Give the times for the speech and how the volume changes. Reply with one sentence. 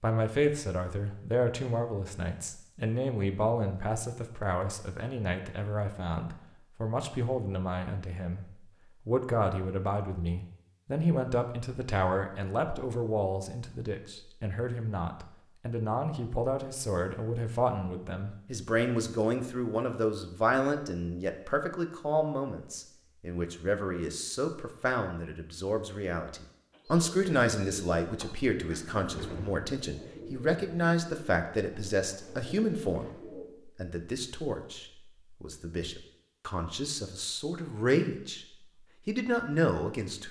You can hear the speech from 0.0 to 38.5 s, at a steady volume; and briefly from 39.0 to 40.2 s.